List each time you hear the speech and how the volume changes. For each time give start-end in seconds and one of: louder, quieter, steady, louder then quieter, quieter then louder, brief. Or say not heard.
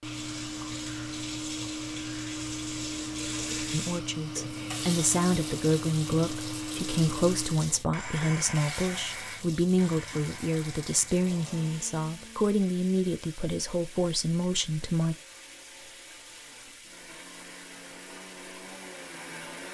3.7-15.2 steady.